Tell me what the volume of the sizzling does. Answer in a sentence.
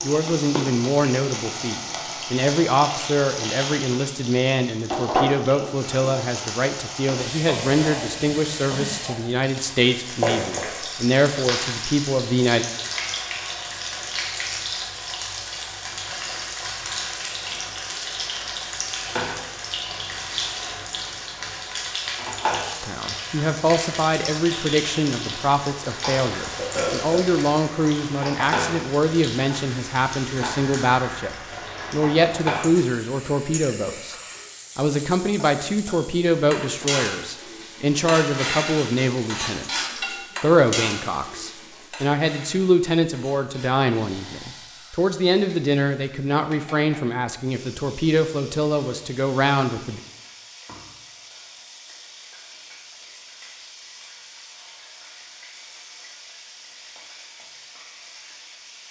The volume of the sizzling goes down.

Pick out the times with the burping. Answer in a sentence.
The burping can be heard from 26.6 to 27.4 s.